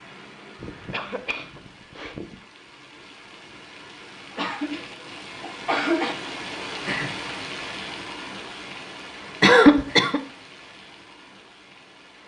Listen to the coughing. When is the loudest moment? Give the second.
10 s.